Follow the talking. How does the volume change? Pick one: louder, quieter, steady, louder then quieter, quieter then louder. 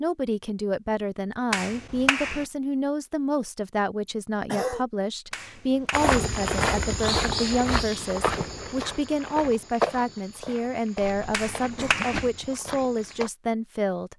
steady.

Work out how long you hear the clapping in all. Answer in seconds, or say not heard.
3 s.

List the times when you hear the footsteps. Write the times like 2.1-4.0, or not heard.
5.9-13.3.